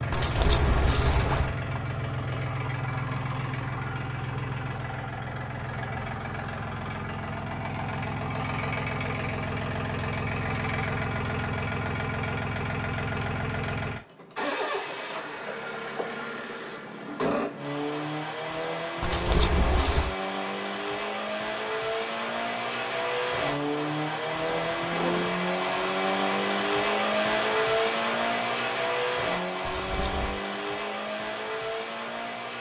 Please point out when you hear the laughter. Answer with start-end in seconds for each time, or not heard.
not heard.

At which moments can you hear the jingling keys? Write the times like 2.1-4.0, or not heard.
0.1-1.6, 19.0-20.1, 29.6-30.4.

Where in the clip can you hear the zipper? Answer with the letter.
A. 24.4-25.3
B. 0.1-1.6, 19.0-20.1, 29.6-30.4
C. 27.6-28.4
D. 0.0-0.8
A.